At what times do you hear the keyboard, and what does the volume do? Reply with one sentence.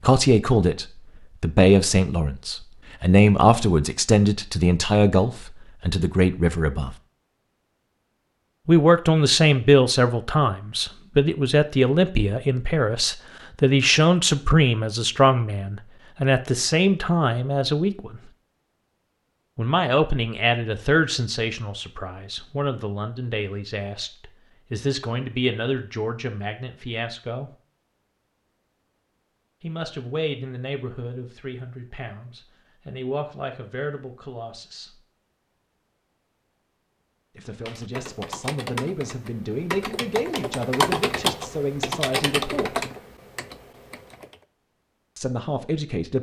The keyboard can be heard from 37.6 to 44.5 s, getting louder then quieter.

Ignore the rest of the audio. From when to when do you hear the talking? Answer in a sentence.
The talking can be heard from 0.0 to 7.0 s, from 8.7 to 18.2 s, from 19.6 to 27.5 s, from 29.6 to 35.0 s, from 37.4 to 42.8 s and from 45.1 to 46.1 s.